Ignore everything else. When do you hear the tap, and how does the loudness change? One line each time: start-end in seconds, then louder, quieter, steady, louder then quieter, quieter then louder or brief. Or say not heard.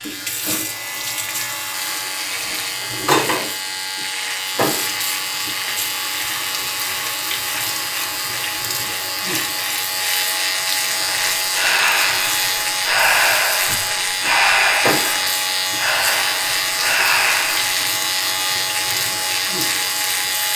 0.0-20.5 steady.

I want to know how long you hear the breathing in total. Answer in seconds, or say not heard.
7 s.